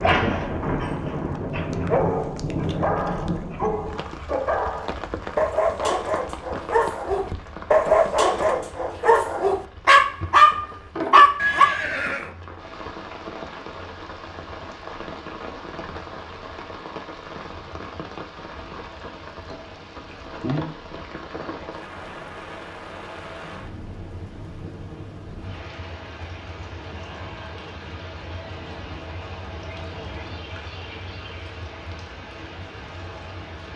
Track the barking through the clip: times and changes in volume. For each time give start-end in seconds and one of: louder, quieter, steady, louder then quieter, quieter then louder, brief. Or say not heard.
0.0-11.8 louder.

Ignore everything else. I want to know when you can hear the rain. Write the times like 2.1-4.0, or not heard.
0.0-33.7.